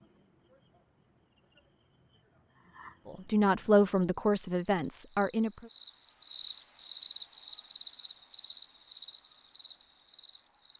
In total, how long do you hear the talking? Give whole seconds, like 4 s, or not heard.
3 s.